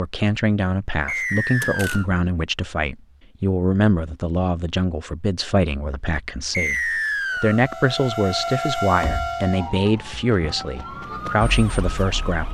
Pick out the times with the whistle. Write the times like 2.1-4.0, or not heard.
1.1-2.0, 6.5-7.6.